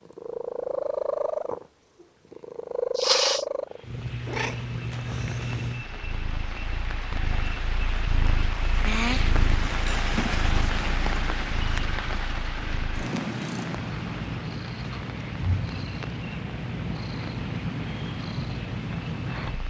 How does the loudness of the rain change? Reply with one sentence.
The volume of the rain goes up, then down.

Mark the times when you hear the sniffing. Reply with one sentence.
The sniffing can be heard from 3.0 to 3.5 s.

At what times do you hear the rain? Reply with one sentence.
The rain can be heard from 3.6 to 19.6 s.